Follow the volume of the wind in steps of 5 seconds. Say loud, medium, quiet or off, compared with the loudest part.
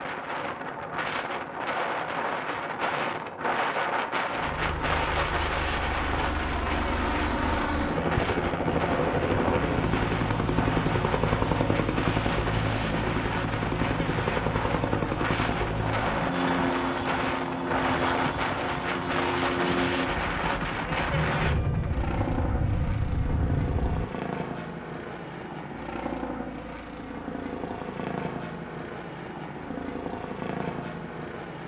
loud, loud, loud, loud, loud, off, off.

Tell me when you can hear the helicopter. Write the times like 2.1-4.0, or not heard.
4.4-31.6.